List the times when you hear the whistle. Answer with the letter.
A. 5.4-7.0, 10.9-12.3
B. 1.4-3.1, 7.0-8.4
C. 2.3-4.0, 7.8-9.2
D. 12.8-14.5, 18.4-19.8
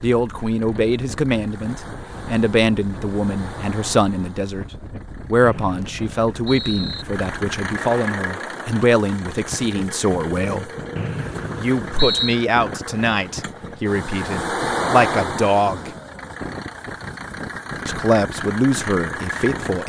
A.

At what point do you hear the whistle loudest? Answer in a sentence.
The volume of the whistle peaks at 12 seconds.